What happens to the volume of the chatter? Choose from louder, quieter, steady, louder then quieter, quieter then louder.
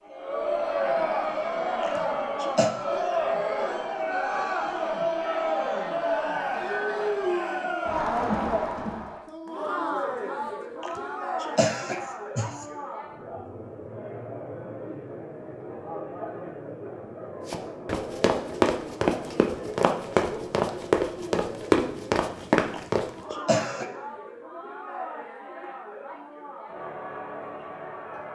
quieter.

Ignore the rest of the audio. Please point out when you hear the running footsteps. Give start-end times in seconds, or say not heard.
17.4-23.4.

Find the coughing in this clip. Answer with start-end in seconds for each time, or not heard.
1.8-2.7, 10.8-12.7, 22.7-23.9.